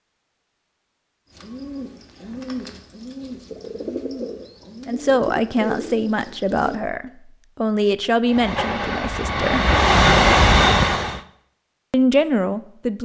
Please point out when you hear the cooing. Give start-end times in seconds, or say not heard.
1.3-6.8.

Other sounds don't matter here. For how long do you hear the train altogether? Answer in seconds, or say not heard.
3 s.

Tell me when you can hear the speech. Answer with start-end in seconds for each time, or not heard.
4.8-9.7, 11.9-13.0.